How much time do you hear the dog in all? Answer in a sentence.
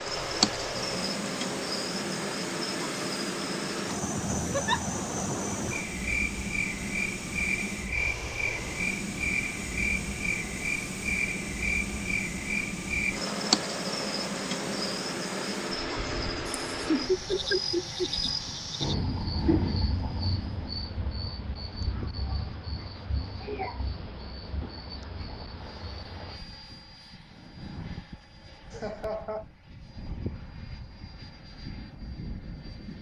You can't hear the dog here.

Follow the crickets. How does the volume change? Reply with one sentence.
The volume of the crickets goes down.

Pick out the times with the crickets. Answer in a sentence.
The crickets can be heard from 0.0 to 26.4 s.